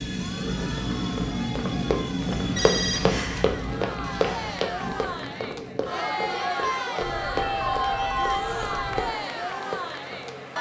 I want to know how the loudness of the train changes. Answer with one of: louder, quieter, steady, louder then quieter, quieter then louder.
quieter.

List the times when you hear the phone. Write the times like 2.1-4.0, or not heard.
2.4-3.5, 7.0-9.0.